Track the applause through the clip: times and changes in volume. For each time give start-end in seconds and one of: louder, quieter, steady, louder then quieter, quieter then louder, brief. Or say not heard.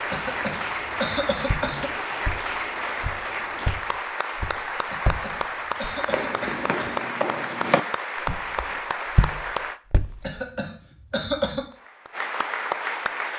0.0-9.8 steady
11.7-13.3 brief.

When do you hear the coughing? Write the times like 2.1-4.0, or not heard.
0.1-1.9, 4.9-7.0, 10.2-11.7.